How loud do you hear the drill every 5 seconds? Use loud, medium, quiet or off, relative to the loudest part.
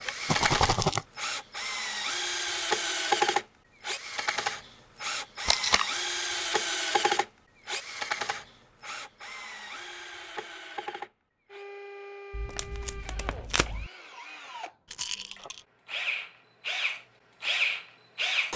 loud, loud, quiet, loud.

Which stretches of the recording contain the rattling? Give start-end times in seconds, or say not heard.
0.2-1.1, 14.8-15.7.